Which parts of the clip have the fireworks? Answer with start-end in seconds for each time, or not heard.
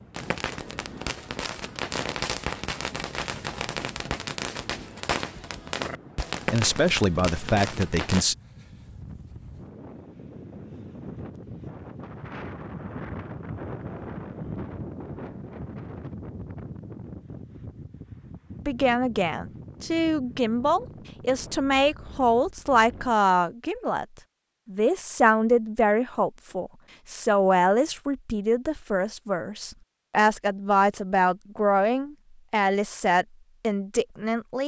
0.1-8.2.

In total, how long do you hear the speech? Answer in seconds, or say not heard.
17 s.